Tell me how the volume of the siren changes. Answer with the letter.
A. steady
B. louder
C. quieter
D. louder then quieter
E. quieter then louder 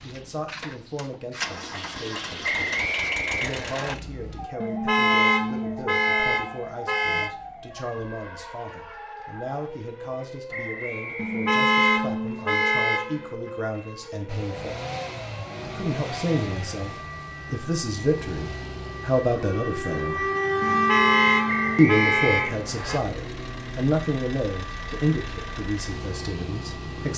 D.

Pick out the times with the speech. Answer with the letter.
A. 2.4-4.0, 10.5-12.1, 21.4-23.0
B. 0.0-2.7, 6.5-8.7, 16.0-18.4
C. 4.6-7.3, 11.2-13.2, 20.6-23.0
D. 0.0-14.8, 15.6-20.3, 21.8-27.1
D.